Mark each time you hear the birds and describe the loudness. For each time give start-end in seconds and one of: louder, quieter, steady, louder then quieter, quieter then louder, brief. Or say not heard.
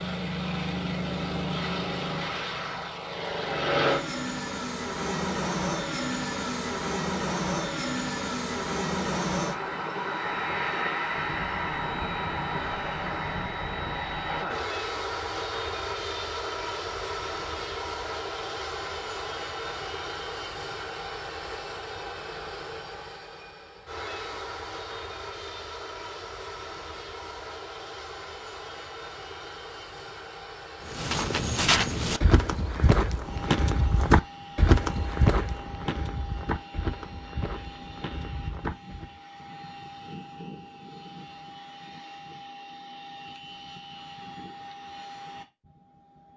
not heard.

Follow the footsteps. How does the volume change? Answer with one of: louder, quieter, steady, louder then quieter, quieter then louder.
quieter.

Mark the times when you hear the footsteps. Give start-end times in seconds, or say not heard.
30.9-39.1.